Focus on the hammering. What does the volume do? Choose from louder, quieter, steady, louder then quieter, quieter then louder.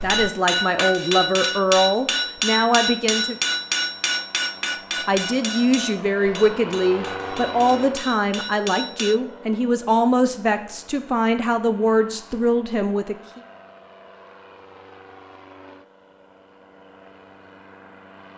quieter.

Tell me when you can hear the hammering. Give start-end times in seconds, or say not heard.
0.0-9.2.